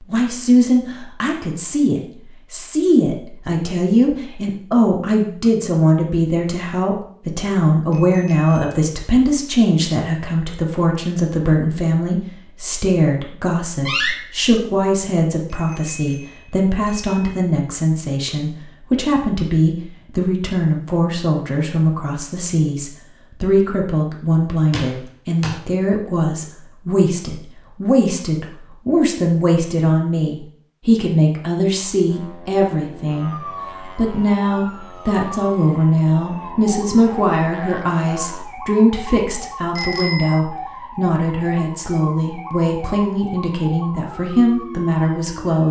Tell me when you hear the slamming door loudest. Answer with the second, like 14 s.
14 s.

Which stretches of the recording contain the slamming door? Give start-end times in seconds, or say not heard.
13.8-14.5, 24.7-25.6.